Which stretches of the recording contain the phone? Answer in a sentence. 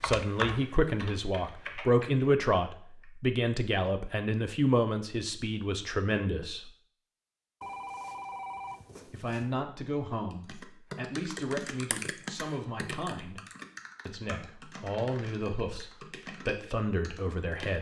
You can hear the phone from 7.6 to 9.6 s.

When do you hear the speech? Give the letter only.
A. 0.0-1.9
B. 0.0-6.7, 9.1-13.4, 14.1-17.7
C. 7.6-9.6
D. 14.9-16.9
B.